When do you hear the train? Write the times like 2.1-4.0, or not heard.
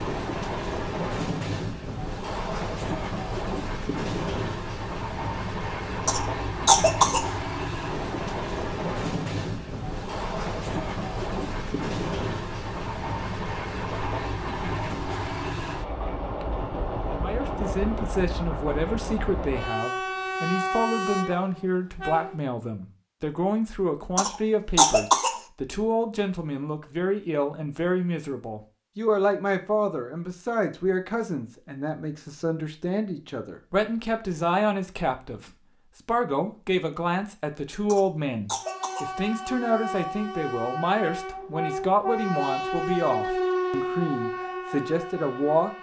0.0-22.4, 38.6-45.7.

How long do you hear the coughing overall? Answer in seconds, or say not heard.
4 s.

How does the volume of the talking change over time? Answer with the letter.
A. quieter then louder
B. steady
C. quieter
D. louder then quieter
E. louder
B.